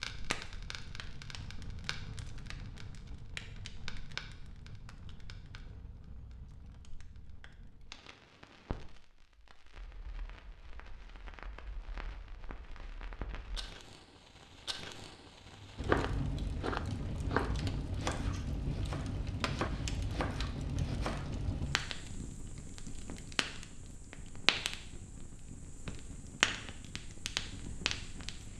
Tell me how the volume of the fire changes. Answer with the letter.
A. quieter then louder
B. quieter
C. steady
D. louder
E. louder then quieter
A.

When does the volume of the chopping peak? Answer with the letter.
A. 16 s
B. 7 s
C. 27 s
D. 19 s
A.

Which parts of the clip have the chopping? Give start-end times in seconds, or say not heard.
15.8-21.3.